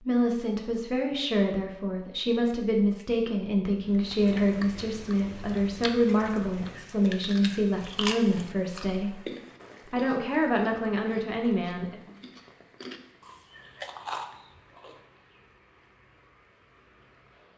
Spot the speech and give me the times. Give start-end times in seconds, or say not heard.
0.0-9.2, 9.9-11.9.